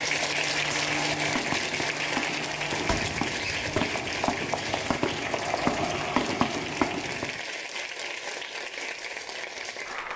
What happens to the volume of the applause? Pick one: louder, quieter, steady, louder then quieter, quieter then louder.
quieter.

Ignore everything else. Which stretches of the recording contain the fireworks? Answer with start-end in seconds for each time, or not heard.
0.0-7.4.